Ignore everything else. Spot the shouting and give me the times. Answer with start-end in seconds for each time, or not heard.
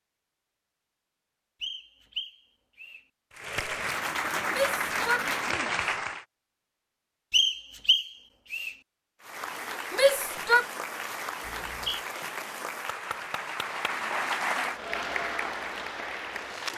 4.5-5.8, 9.9-10.7.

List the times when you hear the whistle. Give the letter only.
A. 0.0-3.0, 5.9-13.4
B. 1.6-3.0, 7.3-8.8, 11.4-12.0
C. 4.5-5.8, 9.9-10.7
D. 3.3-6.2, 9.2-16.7
B.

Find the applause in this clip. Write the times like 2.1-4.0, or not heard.
3.3-6.2, 9.2-16.7.